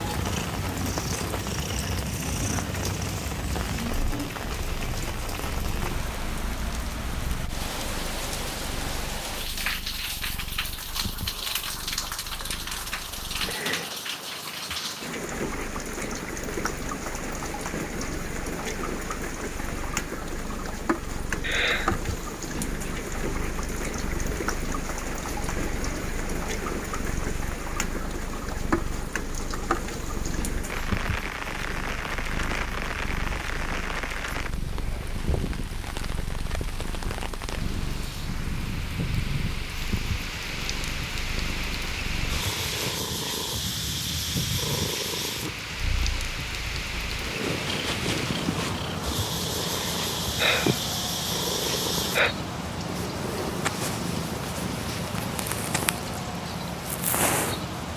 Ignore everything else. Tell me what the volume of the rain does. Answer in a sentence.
The loudness of the rain stays about the same.